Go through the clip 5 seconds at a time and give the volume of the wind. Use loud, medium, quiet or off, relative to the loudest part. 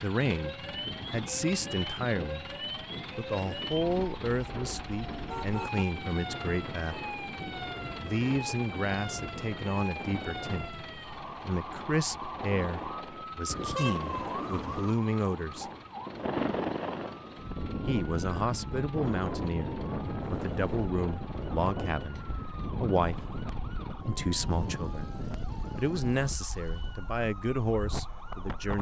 medium, medium, medium, loud, loud, medium.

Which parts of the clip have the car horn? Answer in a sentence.
You can hear the car horn from 4.9 to 5.8 s, from 13.4 to 14.9 s and from 20.2 to 20.9 s.